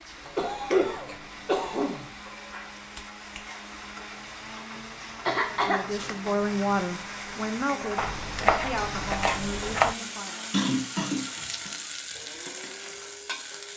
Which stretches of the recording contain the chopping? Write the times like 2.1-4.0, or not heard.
8.0-9.9.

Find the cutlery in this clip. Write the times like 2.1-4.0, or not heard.
not heard.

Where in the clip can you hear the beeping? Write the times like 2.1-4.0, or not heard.
not heard.